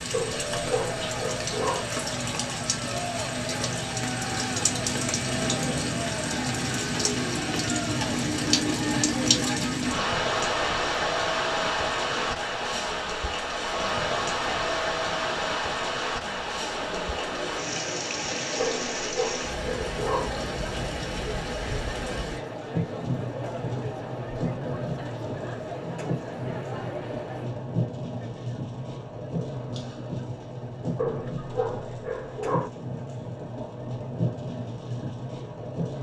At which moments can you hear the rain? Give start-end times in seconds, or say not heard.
0.0-35.9.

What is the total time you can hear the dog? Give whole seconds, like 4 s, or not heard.
5 s.